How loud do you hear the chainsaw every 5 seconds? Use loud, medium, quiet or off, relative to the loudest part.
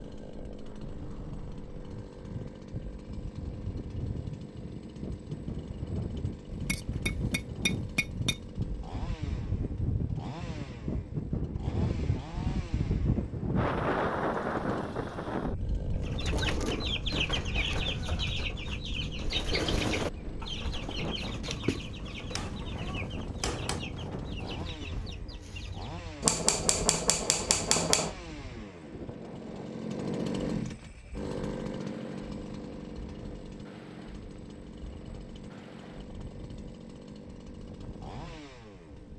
medium, medium, medium, medium, medium, medium, loud, medium.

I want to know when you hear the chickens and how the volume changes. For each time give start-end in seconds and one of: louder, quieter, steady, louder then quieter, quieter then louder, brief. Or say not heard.
16.0-25.9 quieter.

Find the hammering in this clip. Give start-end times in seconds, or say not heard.
6.5-8.5, 22.4-23.9, 26.2-28.1.